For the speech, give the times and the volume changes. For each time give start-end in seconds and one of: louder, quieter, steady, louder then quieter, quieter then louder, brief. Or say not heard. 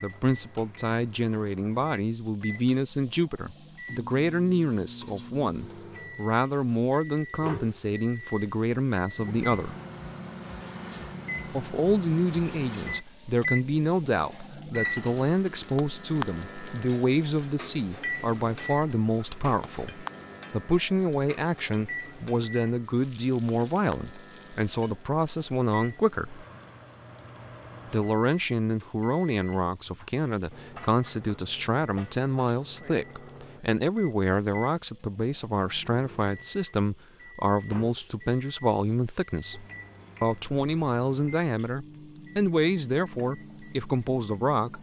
0.0-9.8 steady
11.5-26.4 steady
27.9-44.7 steady.